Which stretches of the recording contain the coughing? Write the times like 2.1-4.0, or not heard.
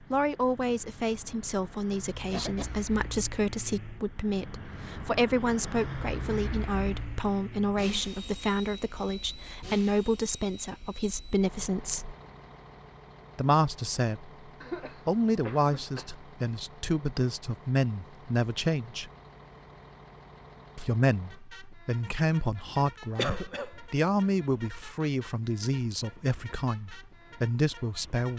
2.3-2.9, 14.6-16.1, 23.1-23.9.